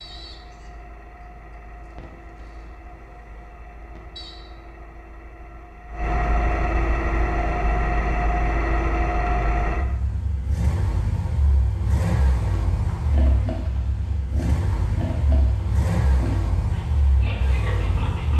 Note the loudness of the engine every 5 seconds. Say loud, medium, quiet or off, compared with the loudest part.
quiet, loud, loud, loud.